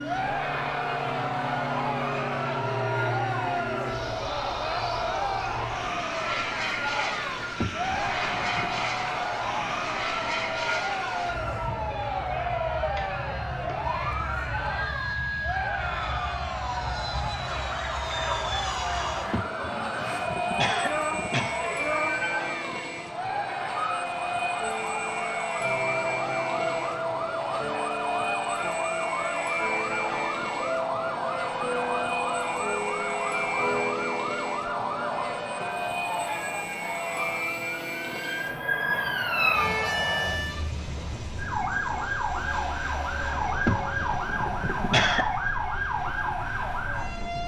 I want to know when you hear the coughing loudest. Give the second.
45 s.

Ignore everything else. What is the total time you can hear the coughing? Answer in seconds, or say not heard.
5 s.